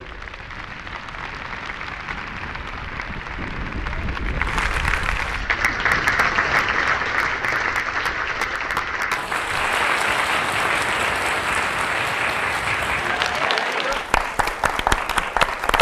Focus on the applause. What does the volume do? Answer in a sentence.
The volume of the applause goes up.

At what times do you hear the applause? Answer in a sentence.
You can hear the applause from 0.0 to 15.7 s.